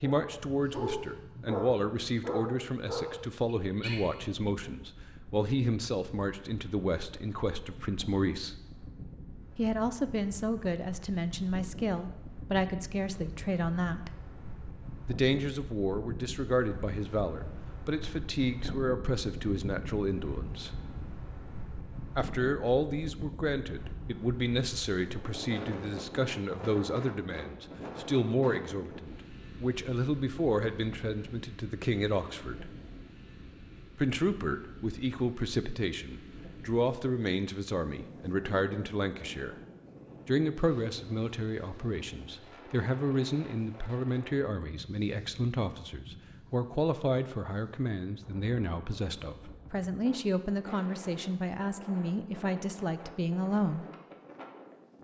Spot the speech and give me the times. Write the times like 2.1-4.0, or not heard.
0.0-8.6, 9.6-14.1, 15.1-20.7, 22.1-32.7, 34.0-39.5, 40.2-53.9.